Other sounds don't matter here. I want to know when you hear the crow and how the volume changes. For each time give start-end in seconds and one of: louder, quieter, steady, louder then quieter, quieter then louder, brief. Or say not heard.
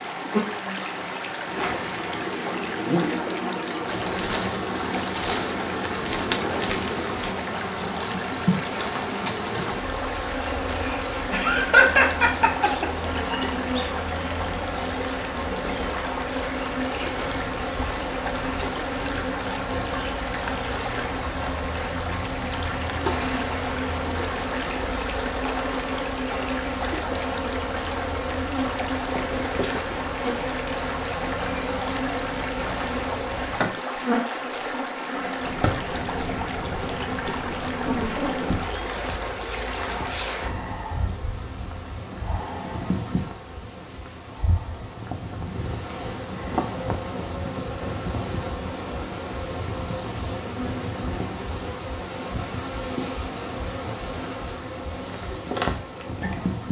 not heard.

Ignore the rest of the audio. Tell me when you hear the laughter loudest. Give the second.
12 s.